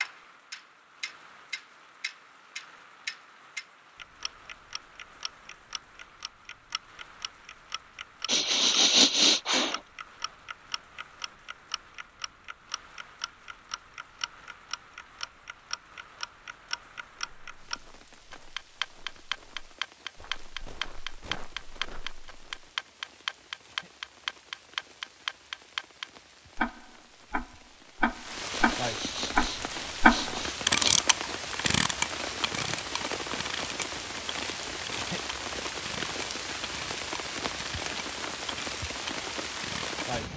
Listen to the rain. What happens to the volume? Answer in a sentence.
The loudness of the rain goes up.